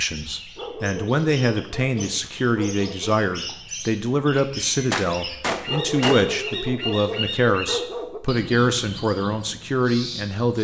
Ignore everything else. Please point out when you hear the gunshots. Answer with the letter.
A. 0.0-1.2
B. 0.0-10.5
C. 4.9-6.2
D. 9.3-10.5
C.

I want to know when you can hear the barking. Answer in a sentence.
You can hear the barking from 0.6 to 3.2 s and from 5.7 to 8.2 s.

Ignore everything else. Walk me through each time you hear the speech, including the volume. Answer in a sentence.
You can hear the speech from 0.0 to 10.5 s, at a steady volume.